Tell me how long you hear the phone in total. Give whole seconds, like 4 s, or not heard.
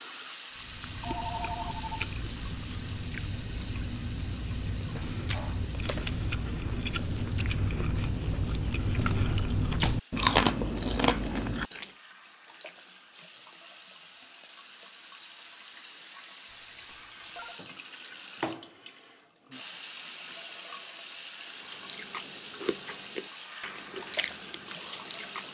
2 s.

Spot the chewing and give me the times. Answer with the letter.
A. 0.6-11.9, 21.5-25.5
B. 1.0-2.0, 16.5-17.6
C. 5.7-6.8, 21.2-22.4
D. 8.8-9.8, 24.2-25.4
A.